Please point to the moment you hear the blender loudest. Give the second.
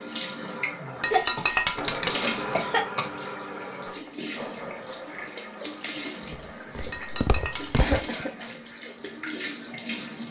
2 s.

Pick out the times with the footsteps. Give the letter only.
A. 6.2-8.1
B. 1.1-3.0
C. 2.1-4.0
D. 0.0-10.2
A.